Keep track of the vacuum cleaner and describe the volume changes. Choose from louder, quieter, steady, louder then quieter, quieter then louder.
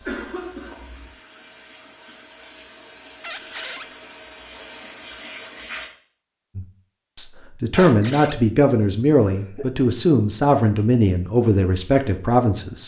louder.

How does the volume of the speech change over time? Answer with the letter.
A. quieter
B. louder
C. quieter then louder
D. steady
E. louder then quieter
D.